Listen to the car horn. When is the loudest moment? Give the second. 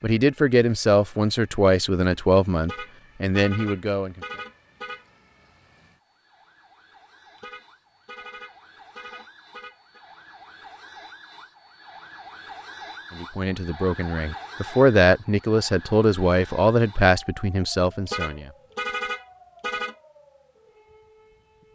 19 s.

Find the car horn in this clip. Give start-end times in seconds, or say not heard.
2.6-5.0, 7.3-10.0, 18.1-19.9.